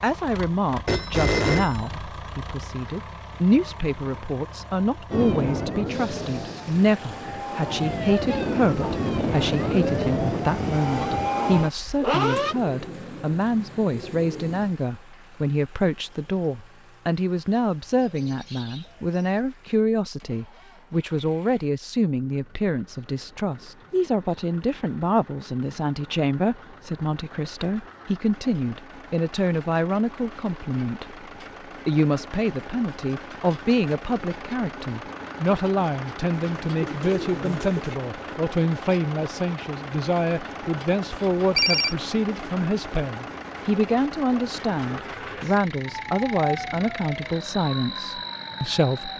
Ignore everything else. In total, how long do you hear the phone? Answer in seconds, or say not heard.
2 s.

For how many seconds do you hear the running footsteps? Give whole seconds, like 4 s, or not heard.
not heard.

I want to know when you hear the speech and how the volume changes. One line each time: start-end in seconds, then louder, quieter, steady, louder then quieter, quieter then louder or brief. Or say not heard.
0.0-31.1 steady
31.9-49.1 steady.